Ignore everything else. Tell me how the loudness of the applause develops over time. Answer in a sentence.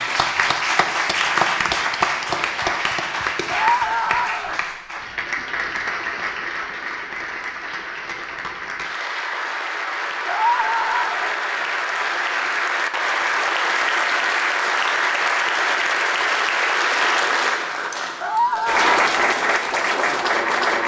The volume of the applause goes down, then up.